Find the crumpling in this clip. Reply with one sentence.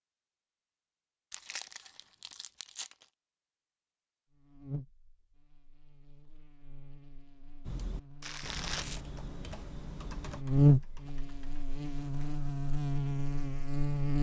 The crumpling can be heard from 1.3 to 3.0 s and from 8.2 to 9.0 s.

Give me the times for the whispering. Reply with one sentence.
You can't hear the whispering here.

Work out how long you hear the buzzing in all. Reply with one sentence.
The buzzing can be heard for 10 seconds in total.